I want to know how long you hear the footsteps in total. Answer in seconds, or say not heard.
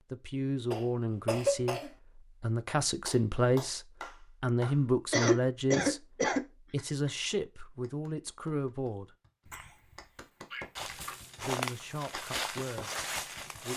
3 s.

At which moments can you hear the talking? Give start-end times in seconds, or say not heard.
0.1-9.2, 11.4-13.7.